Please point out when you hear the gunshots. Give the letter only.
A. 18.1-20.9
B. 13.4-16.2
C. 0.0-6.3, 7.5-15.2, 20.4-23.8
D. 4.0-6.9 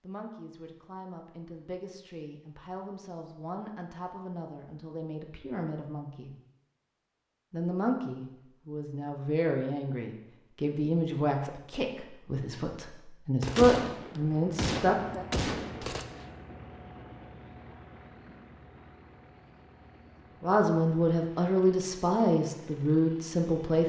B.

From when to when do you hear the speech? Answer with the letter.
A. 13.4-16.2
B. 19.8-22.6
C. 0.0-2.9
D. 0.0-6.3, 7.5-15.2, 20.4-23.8
D.